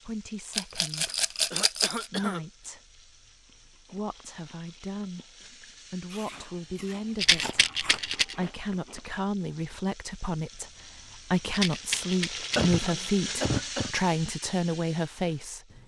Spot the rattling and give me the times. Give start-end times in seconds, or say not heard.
0.5-2.0, 7.2-8.3, 11.5-12.8.